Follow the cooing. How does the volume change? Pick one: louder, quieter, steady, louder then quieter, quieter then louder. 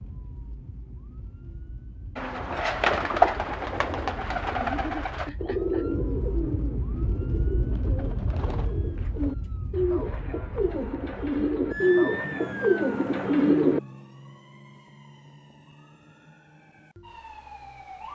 quieter then louder.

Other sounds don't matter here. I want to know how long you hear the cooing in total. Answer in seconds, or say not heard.
12 s.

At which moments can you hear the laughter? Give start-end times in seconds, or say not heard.
4.5-5.8.